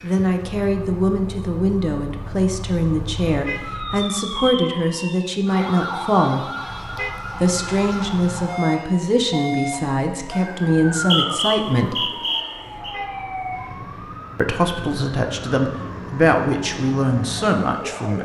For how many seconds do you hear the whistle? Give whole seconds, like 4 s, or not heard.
2 s.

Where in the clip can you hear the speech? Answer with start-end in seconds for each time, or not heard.
0.0-6.5, 7.4-12.1, 14.3-18.2.